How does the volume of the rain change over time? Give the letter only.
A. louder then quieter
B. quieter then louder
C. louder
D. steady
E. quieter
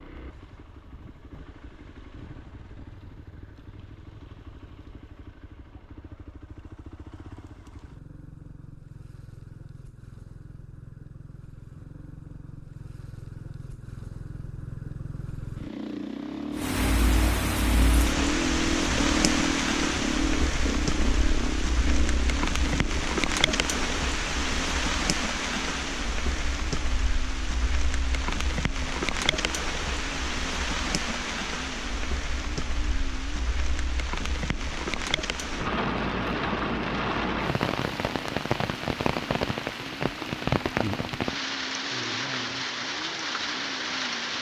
D.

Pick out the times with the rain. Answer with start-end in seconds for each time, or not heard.
16.6-44.3.